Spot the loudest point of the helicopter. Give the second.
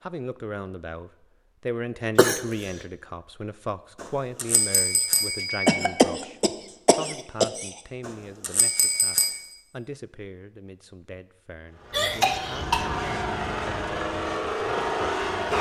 15 s.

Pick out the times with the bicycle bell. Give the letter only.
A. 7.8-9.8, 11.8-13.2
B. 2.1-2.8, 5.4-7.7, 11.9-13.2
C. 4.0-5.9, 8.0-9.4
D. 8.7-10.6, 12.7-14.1
C.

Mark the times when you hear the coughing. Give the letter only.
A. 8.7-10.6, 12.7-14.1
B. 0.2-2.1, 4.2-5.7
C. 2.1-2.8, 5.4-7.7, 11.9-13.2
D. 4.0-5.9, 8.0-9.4
C.